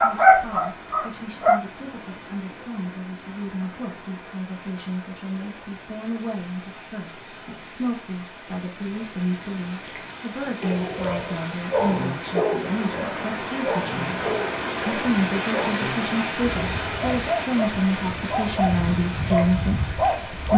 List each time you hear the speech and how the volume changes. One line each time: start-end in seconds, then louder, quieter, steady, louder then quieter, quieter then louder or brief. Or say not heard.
0.0-20.5 louder.